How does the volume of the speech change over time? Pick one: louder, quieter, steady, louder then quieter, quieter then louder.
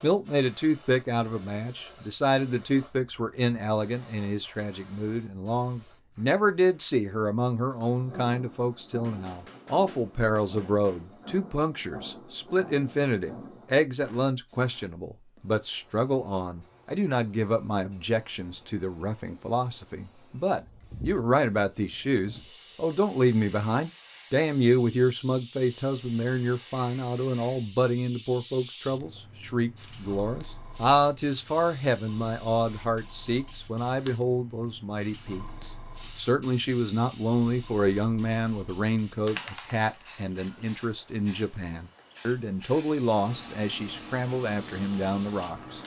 steady.